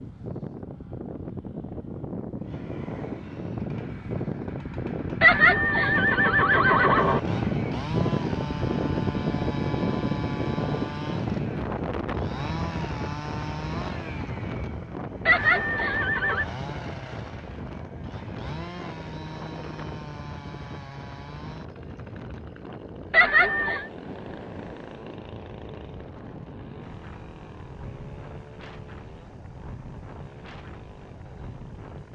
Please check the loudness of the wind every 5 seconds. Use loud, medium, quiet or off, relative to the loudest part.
medium, loud, loud, medium, quiet, quiet, quiet.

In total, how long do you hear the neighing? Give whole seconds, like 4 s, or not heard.
4 s.